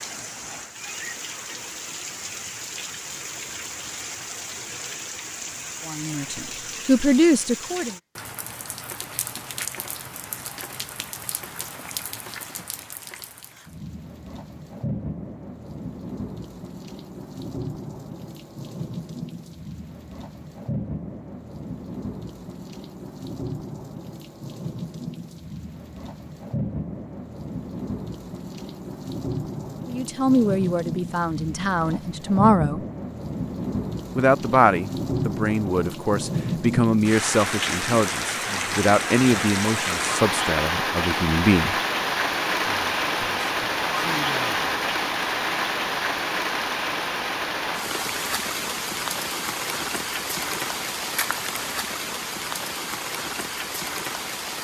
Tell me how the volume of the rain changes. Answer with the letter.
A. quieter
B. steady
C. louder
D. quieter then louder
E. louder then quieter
C.